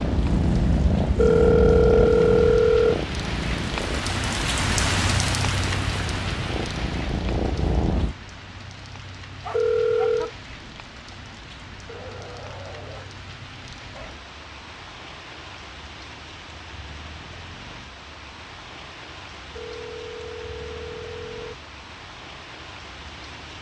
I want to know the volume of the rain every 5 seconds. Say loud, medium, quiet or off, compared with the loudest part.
loud, loud, medium, medium, medium.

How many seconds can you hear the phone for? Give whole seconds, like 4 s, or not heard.
5 s.